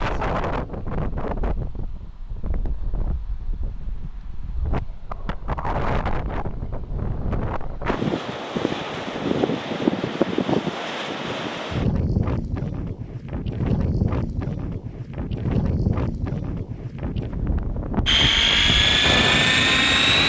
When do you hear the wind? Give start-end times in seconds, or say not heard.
0.0-20.2.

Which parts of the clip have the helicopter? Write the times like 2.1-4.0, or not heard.
18.1-20.2.